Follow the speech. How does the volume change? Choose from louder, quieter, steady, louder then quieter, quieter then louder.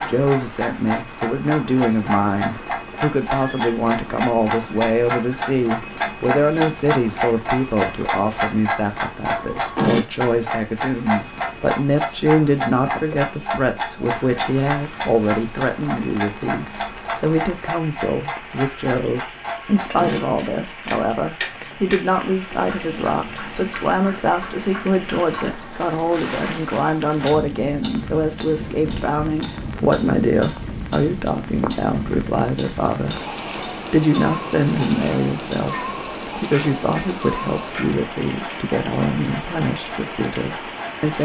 steady.